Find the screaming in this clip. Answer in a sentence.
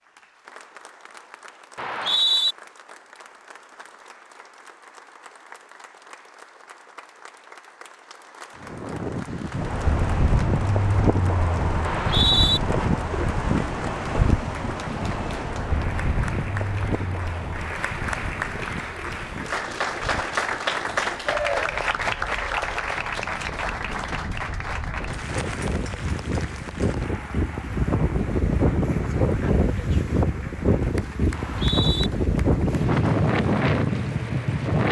You can't hear the screaming here.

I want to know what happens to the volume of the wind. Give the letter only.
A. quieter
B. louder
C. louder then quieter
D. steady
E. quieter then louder
E.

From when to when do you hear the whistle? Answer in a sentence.
You can hear the whistle from 1.8 to 2.5 s, from 11.8 to 12.6 s and from 31.3 to 32.1 s.